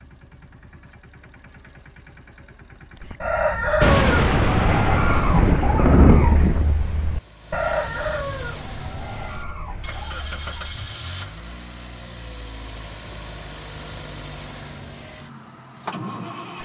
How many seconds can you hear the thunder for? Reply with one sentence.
You can hear the thunder for 3 seconds altogether.